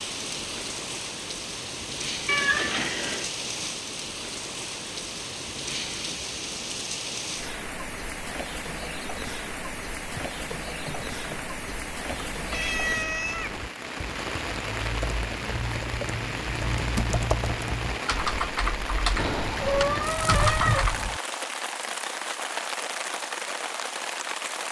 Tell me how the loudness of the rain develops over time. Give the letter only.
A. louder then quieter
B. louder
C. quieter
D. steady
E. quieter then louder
D.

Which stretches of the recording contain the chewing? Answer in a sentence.
The chewing can't be heard in this clip.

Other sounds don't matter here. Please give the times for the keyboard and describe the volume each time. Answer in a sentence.
The keyboard can be heard from 10.1 to 21.0 s, getting louder.